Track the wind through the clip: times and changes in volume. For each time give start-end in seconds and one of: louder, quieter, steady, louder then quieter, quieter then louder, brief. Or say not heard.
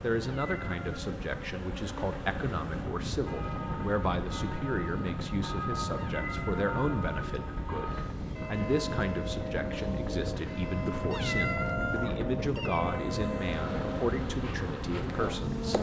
0.0-15.7 steady.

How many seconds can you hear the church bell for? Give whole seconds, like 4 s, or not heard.
11 s.